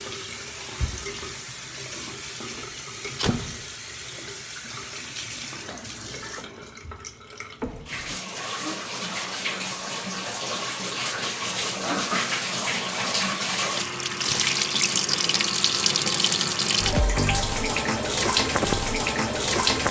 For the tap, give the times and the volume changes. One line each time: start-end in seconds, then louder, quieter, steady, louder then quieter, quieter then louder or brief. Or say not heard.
0.0-19.8 louder.